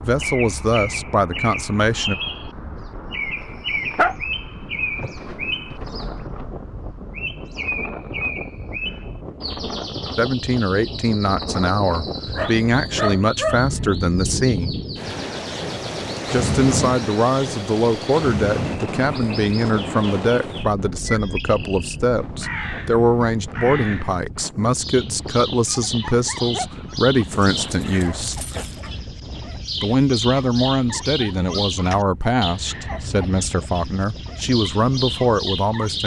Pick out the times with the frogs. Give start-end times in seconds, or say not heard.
not heard.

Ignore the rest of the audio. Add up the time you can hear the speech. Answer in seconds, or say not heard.
25 s.